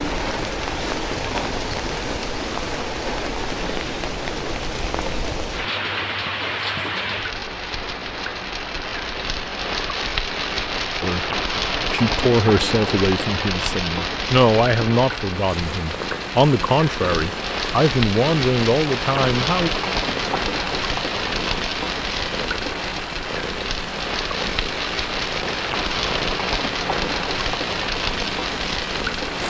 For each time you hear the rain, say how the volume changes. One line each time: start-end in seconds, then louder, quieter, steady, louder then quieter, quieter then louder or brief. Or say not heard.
0.0-29.4 steady.